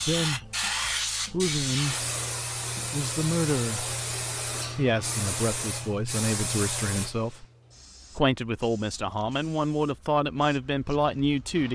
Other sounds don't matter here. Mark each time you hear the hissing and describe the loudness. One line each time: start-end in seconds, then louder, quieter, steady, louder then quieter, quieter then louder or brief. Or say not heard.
0.0-11.7 quieter.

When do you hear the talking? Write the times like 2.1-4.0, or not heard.
0.0-0.4, 1.3-2.1, 2.9-4.0, 4.8-7.5, 8.2-11.7.